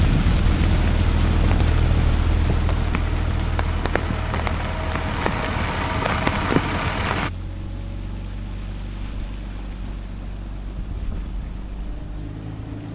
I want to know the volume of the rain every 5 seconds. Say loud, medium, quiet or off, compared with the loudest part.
medium, loud, off.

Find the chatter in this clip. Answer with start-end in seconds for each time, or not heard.
not heard.